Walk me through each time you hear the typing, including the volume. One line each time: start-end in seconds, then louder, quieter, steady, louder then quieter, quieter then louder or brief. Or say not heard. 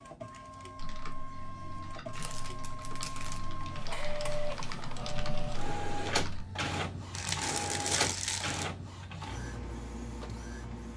0.8-6.5 louder.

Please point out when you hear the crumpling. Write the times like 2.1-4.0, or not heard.
2.1-3.5, 7.1-8.7.